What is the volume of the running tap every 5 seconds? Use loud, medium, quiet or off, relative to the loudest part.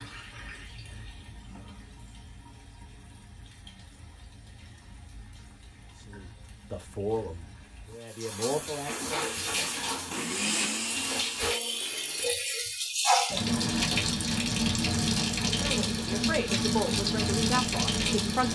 quiet, medium, loud, loud.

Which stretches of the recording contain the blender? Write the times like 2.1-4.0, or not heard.
9.2-12.3.